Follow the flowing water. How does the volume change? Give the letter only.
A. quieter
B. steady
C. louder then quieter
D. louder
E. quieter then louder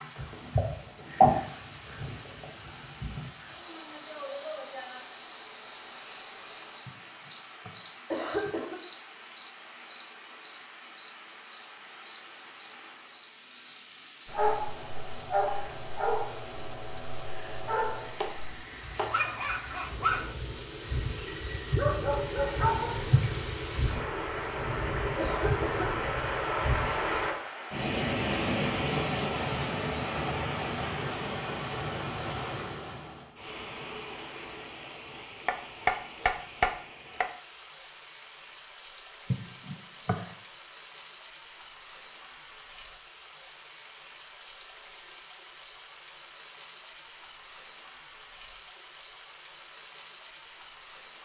C.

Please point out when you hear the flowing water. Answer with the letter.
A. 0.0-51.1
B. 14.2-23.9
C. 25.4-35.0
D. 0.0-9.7
A.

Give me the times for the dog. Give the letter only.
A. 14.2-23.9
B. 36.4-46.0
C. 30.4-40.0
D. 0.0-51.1
A.